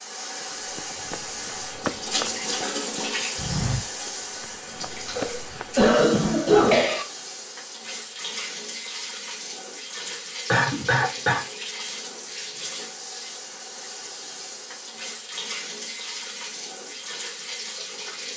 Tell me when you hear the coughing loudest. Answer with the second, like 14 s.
7 s.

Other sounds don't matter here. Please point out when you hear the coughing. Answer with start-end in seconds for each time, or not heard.
5.2-7.0, 10.5-11.4.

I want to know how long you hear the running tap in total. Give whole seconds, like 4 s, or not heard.
18 s.